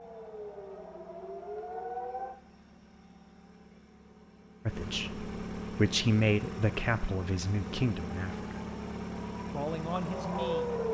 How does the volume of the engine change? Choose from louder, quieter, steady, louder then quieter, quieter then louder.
louder.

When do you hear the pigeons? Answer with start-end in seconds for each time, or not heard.
not heard.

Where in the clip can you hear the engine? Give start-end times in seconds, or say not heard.
0.0-10.8.